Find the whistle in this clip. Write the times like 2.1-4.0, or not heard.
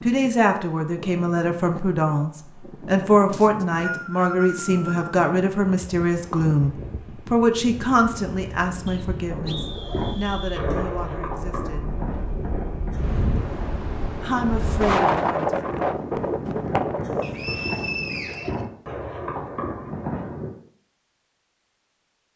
3.3-5.0, 8.8-10.7, 17.2-18.6.